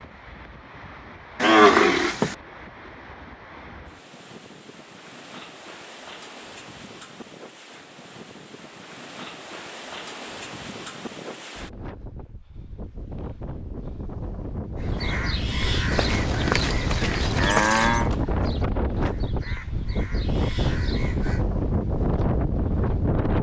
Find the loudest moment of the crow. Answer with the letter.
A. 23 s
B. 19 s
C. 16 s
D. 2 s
C.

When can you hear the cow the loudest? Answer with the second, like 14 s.
2 s.